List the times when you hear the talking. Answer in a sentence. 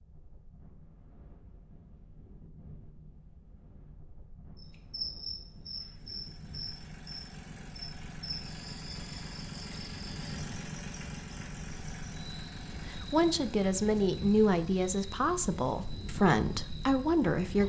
You can hear the talking from 12.8 to 17.6 s.